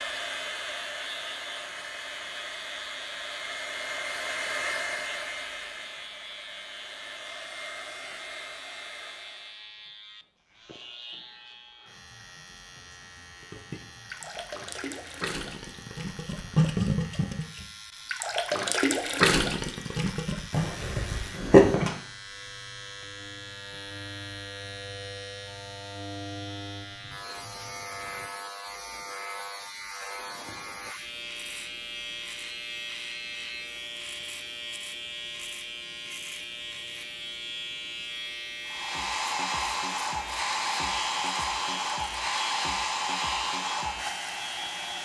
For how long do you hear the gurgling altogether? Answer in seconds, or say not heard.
7 s.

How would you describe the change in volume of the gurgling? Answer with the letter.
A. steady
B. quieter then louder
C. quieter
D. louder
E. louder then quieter
D.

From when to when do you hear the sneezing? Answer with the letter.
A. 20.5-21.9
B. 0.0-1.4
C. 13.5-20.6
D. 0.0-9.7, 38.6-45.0
A.